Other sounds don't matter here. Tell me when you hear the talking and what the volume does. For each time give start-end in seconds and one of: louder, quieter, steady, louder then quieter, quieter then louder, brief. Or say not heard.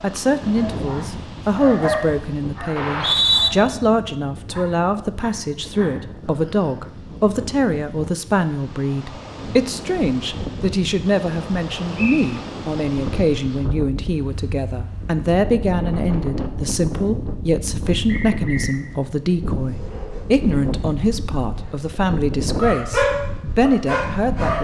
0.0-24.5 steady.